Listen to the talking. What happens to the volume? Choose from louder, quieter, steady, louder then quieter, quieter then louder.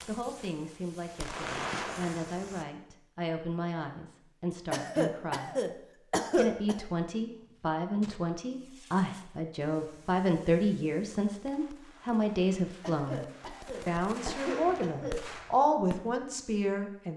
louder.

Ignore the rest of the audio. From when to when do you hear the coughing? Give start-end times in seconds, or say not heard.
4.7-6.8, 12.8-15.2.